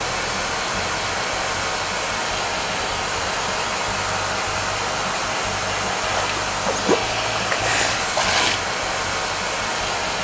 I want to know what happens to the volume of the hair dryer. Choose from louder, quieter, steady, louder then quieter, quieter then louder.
steady.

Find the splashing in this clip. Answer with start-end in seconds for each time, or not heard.
6.0-8.6.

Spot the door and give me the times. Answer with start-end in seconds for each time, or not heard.
not heard.